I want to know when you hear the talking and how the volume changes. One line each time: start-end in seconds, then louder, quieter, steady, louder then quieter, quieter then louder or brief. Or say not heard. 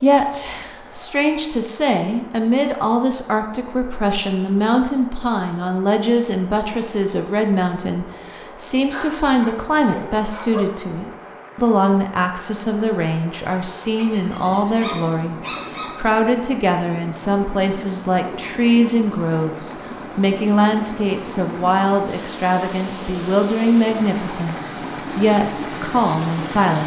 0.0-26.8 steady.